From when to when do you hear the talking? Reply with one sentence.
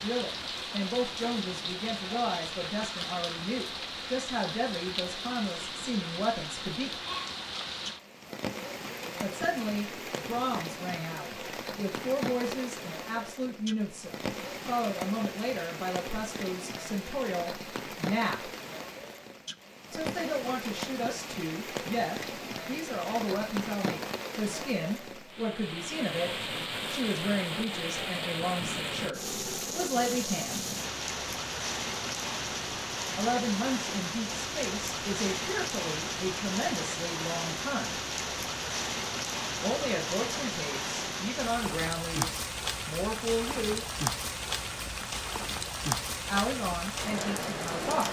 You can hear the talking from 0.0 to 6.9 s, from 9.2 to 18.5 s, from 19.9 to 30.6 s, from 33.1 to 38.0 s, from 39.6 to 43.9 s and from 46.2 to 48.0 s.